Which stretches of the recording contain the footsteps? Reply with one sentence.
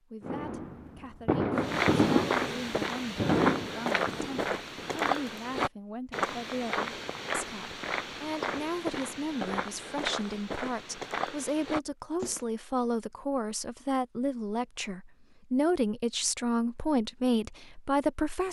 The footsteps can be heard from 1.6 to 12.4 s.